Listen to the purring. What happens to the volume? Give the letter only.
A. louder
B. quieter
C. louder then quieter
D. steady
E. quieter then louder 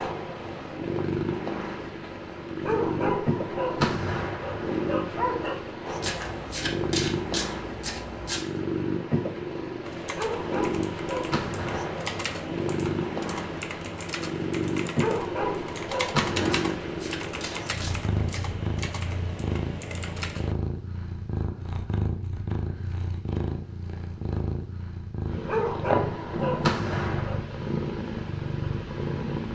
D.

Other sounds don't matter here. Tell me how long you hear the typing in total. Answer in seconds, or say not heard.
11 s.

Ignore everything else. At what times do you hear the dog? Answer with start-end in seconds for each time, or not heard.
2.6-5.5, 10.2-12.0, 14.9-16.8, 25.4-27.4.